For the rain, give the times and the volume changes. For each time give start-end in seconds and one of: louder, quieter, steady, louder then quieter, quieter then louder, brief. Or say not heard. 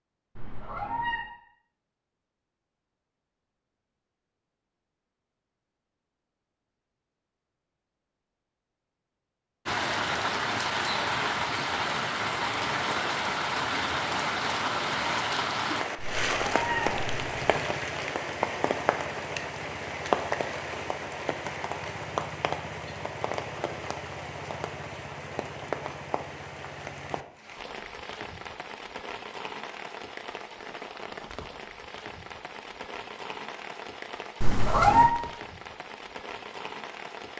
9.7-37.3 quieter.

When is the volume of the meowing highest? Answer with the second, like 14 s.
35 s.